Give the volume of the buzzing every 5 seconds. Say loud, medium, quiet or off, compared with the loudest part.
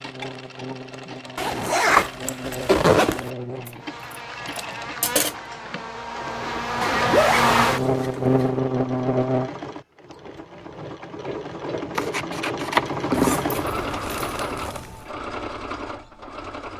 quiet, loud, off, off.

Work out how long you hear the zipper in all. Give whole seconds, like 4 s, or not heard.
6 s.